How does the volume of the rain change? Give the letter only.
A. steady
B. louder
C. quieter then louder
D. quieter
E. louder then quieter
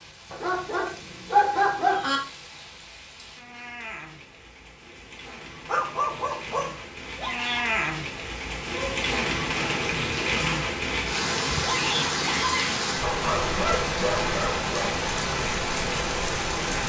B.